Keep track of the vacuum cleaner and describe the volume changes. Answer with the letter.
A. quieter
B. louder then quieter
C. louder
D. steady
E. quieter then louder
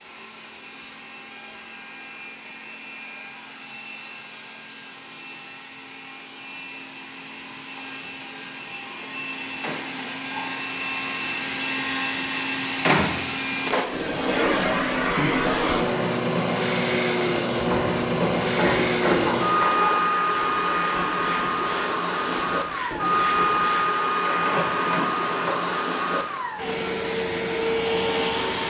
C.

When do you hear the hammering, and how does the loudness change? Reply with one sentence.
The hammering can't be heard in this clip.